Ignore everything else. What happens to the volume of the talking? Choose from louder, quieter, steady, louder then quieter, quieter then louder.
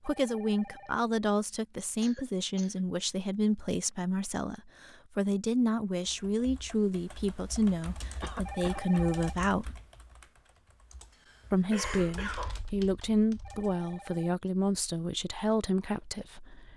steady.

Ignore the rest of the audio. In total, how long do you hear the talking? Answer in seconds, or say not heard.
15 s.